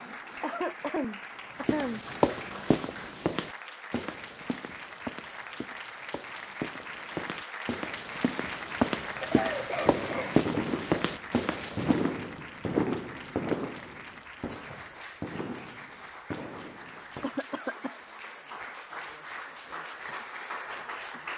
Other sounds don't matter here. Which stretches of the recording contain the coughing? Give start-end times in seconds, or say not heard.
0.4-2.0, 9.1-10.4, 17.2-18.0.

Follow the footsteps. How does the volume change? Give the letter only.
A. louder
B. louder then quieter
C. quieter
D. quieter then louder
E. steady
D.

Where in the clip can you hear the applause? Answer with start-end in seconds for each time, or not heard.
0.0-21.3.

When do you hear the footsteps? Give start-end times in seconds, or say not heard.
1.6-12.2.